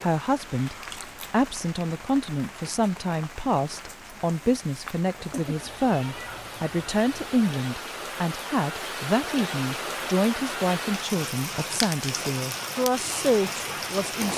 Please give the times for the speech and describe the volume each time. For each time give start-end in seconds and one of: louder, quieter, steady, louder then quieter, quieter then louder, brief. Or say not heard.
0.0-14.3 steady.